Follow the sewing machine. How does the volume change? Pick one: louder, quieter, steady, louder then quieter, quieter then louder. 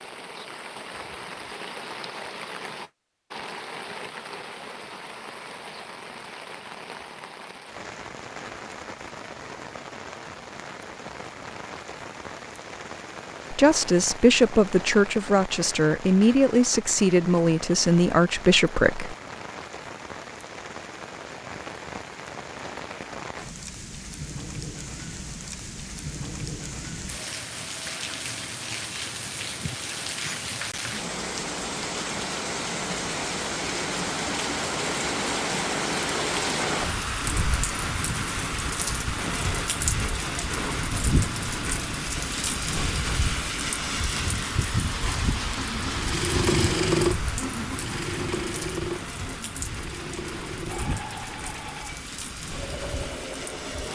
quieter.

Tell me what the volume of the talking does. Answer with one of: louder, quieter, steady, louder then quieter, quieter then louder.
steady.